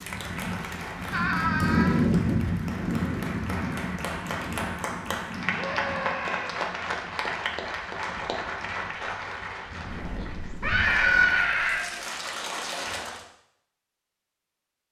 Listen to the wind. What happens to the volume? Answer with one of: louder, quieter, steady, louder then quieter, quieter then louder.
quieter then louder.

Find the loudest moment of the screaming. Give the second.
11 s.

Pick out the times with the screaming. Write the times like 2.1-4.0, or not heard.
1.1-2.0, 5.5-6.5, 10.6-11.9.